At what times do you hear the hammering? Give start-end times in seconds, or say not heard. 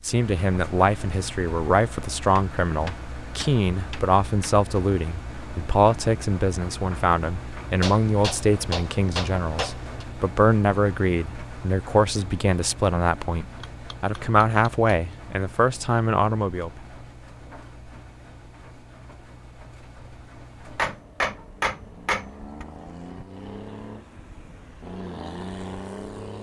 2.4-4.5, 7.8-10.1, 13.6-14.9, 20.6-22.6.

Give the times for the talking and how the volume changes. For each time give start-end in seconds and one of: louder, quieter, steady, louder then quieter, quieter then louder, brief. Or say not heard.
0.0-16.8 steady.